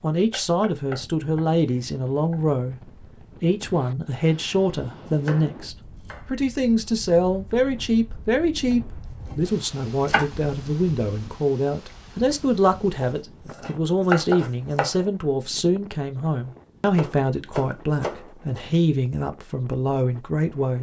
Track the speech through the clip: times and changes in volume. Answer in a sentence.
The speech can be heard from 0.0 to 20.7 s, at a steady volume.